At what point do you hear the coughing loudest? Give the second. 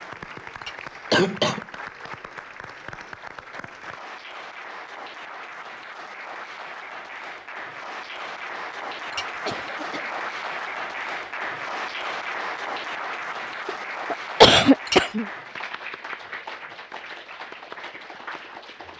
15 s.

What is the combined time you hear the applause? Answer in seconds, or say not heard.
19 s.